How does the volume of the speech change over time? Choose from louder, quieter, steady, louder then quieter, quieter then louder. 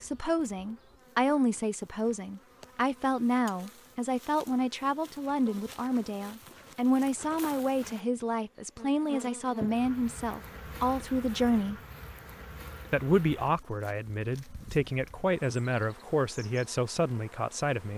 steady.